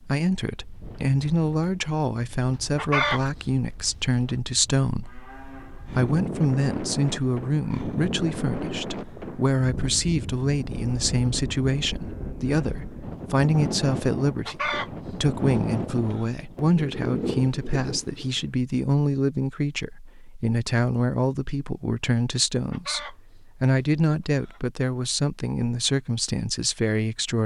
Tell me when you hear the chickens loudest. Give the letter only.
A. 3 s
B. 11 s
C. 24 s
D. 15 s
A.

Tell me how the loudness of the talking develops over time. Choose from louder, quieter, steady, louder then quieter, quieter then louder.
steady.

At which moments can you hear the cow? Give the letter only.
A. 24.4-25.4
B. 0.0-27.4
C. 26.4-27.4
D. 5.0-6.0
D.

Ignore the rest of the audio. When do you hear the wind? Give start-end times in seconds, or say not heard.
0.0-18.5.